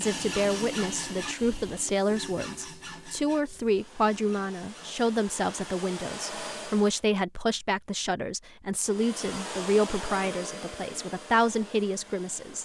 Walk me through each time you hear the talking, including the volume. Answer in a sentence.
The talking can be heard from 0.0 to 12.6 s, at a steady volume.